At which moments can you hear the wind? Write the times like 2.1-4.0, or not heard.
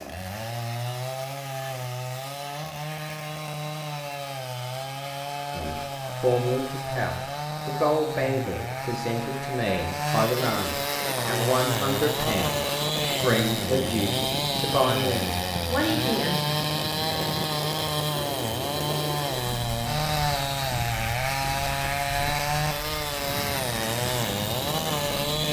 10.8-25.4.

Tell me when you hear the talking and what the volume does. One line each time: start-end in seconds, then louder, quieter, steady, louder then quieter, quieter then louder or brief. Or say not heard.
5.5-16.4 steady.